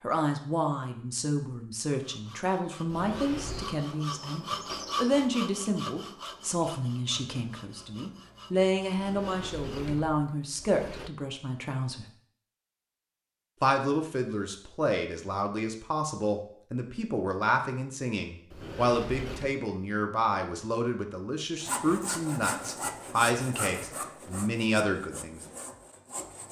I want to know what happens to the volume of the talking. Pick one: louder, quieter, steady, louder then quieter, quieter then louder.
steady.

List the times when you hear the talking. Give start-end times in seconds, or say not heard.
0.0-12.1, 13.6-25.4.